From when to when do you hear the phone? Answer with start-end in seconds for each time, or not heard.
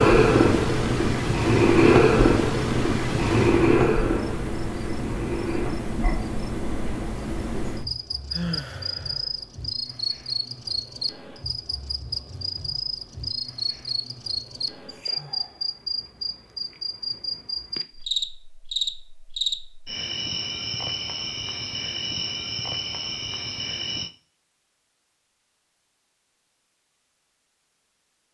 not heard.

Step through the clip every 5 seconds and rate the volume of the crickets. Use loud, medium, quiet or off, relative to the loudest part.
loud, loud, loud, loud, loud, off.